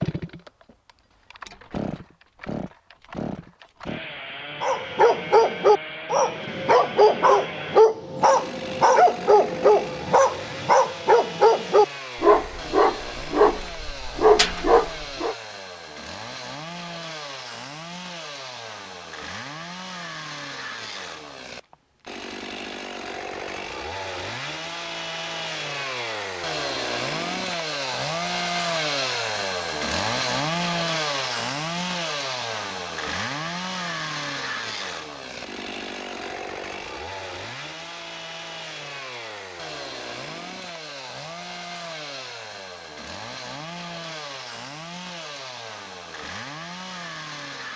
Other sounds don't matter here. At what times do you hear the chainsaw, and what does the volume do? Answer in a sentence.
You can hear the chainsaw from 0.0 to 47.7 s, getting louder then quieter.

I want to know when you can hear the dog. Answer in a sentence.
You can hear the dog from 4.6 to 15.3 s.